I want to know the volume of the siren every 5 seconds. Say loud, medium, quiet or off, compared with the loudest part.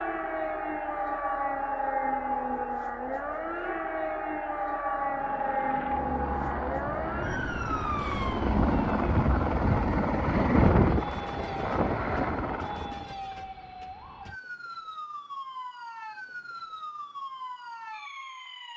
loud, loud, medium, medium.